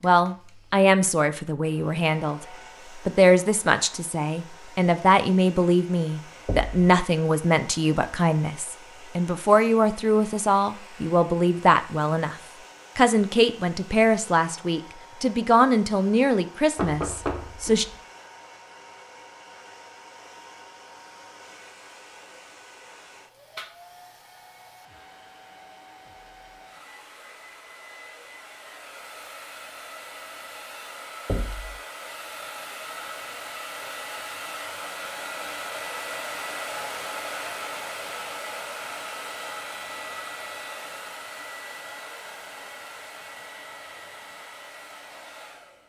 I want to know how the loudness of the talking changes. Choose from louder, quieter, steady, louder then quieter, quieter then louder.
steady.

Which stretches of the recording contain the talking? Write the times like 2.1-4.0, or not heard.
0.0-12.3, 12.9-17.9.